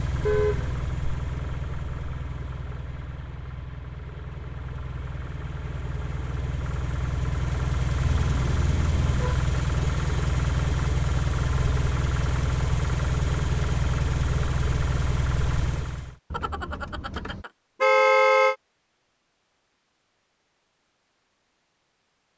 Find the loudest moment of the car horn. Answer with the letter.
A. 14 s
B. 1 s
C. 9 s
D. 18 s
D.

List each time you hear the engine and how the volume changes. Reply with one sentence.
The engine can be heard from 0.0 to 16.1 s, getting louder.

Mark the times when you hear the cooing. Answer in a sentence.
The cooing can't be heard in this clip.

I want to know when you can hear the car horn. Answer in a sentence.
The car horn can be heard from 0.2 to 0.8 s, from 8.0 to 9.4 s and from 16.3 to 18.6 s.